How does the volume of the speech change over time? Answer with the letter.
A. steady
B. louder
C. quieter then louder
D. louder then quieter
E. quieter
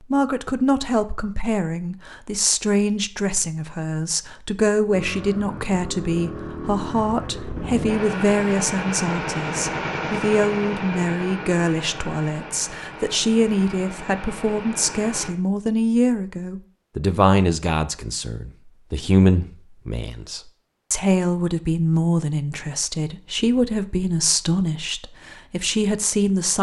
A.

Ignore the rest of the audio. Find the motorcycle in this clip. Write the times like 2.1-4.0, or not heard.
4.8-15.3.